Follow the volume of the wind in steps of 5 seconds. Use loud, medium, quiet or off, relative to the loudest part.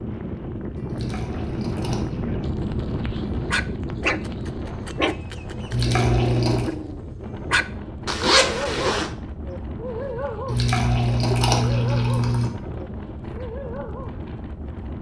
loud, medium, medium.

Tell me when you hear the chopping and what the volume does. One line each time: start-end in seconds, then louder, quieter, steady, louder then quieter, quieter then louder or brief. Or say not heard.
not heard.